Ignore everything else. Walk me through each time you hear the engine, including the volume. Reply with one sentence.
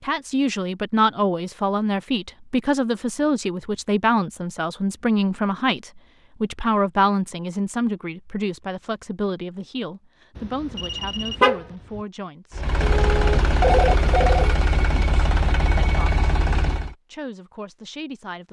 The engine can be heard from 12.5 to 16.9 s, at a steady volume.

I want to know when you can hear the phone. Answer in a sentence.
You can hear the phone from 12.8 to 14.6 s.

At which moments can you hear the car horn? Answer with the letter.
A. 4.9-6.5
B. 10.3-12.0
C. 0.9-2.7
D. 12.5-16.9
B.